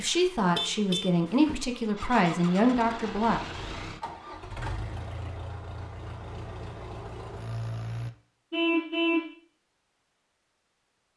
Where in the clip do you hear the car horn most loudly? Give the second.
9 s.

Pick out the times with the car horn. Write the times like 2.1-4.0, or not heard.
0.4-1.6, 8.5-9.3.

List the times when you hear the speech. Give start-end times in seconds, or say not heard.
0.0-3.4.